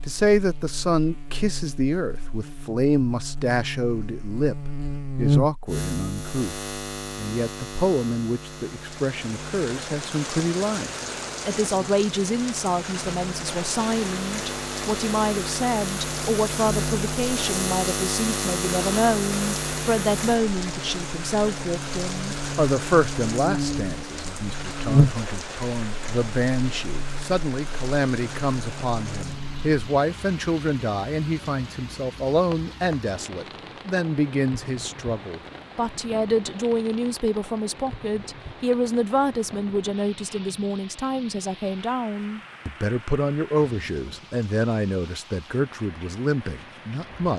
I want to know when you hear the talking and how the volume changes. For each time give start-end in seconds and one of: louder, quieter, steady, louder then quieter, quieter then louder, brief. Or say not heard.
0.1-47.3 steady.